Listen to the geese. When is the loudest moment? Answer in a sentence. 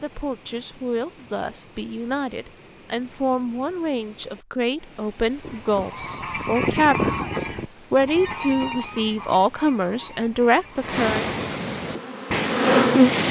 The volume of the geese peaks at 7 seconds.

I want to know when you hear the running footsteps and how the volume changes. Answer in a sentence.
You can't hear the running footsteps here.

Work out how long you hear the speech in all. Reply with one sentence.
The speech can be heard for 11 seconds in total.